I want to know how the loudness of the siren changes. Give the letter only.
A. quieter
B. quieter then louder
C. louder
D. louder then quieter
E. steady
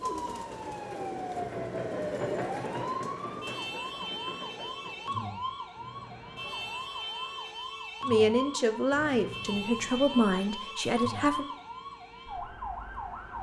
E.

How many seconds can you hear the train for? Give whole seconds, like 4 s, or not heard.
8 s.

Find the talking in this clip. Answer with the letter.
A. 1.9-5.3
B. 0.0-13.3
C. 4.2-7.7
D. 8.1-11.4
D.